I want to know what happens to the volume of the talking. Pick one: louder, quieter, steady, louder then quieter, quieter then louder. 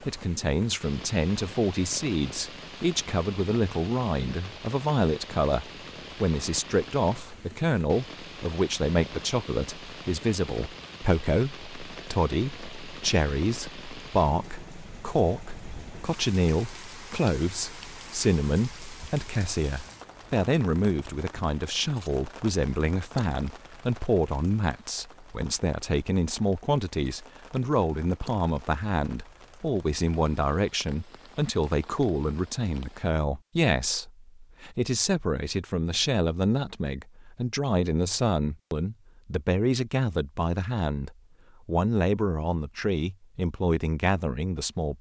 steady.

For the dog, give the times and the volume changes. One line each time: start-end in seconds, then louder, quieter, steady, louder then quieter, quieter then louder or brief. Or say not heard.
not heard.